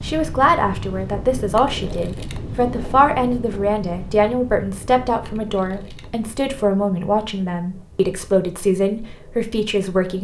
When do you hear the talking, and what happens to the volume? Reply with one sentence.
You can hear the talking from 0.0 to 10.2 s, at a steady volume.